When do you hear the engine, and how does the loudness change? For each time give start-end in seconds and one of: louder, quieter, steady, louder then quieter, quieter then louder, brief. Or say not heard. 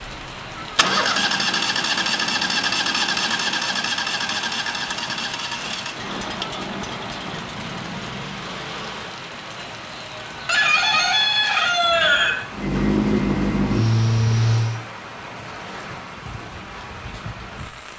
0.1-9.2 quieter
12.5-14.8 brief.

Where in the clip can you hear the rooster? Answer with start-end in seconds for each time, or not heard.
9.6-12.3.